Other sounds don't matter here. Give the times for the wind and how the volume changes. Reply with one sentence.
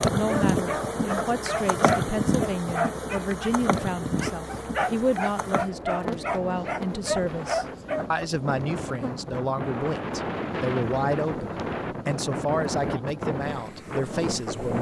You can hear the wind from 0.1 to 14.7 s, getting louder.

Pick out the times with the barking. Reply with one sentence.
You can hear the barking from 0.1 to 8.1 s.